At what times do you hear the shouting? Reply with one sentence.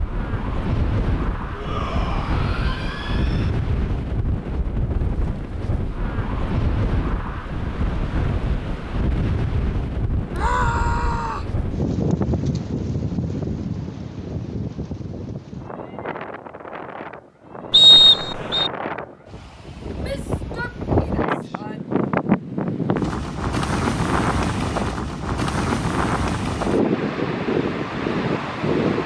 The shouting can be heard from 1.5 to 3.5 s, from 10.3 to 11.5 s and from 20.0 to 21.9 s.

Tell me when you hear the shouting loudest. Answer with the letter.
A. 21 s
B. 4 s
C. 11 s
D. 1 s
C.